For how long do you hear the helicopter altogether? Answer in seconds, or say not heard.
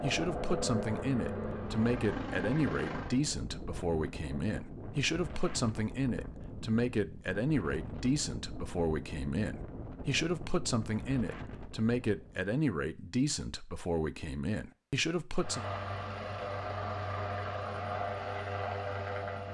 7 s.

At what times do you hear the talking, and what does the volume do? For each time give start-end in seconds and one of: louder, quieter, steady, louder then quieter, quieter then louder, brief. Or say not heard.
0.0-15.7 steady.